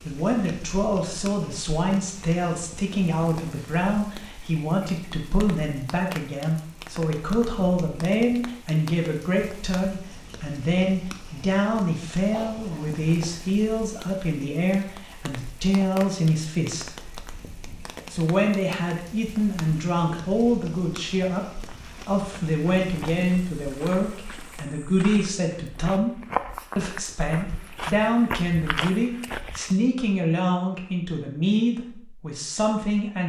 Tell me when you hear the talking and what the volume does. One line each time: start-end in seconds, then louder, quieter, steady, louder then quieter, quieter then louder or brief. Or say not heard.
0.1-17.1 steady
18.1-33.2 steady.